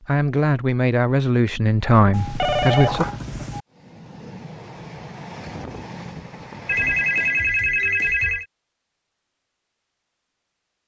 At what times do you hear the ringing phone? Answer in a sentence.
You can hear the ringing phone from 2.1 to 3.6 s and from 6.7 to 8.4 s.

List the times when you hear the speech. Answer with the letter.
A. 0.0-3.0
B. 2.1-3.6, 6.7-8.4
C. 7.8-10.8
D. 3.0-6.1
A.